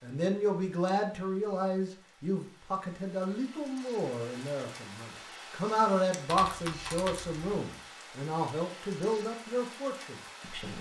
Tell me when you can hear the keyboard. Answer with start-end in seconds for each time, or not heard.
6.2-7.5.